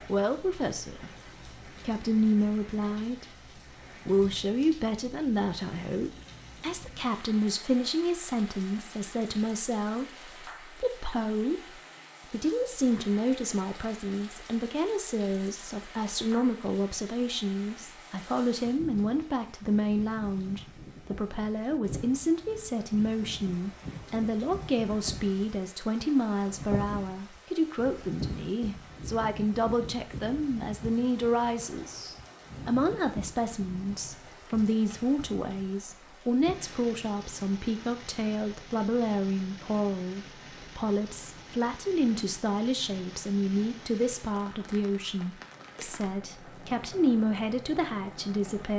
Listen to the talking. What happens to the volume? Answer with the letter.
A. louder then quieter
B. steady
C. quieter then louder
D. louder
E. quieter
B.